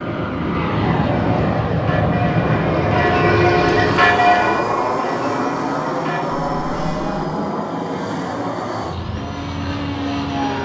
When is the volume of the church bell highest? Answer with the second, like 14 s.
4 s.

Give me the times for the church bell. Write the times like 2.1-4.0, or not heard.
1.1-7.2.